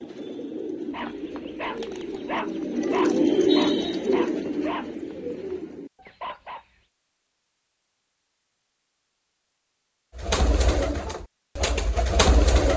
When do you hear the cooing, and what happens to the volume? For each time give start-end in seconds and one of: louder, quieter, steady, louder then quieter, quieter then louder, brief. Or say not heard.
0.0-6.1 louder then quieter
10.2-12.7 brief.